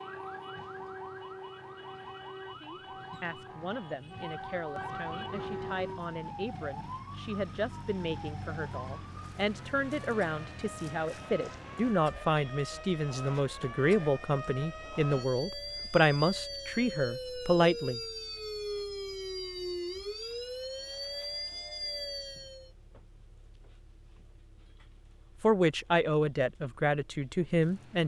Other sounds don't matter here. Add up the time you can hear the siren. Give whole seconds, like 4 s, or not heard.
23 s.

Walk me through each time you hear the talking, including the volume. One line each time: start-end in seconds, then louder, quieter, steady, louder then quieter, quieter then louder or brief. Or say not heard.
2.6-18.0 louder
25.4-28.0 brief.